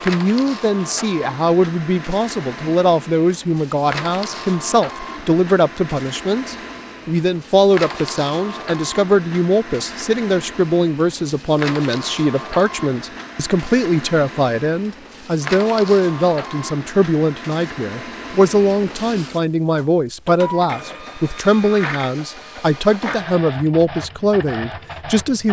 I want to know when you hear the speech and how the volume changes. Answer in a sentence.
The speech can be heard from 0.0 to 25.4 s, at a steady volume.